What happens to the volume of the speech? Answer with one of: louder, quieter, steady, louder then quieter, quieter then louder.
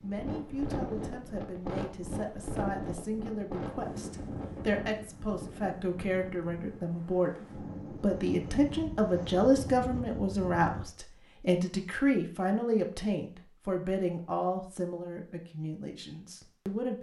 louder then quieter.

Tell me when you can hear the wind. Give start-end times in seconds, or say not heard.
0.0-10.8.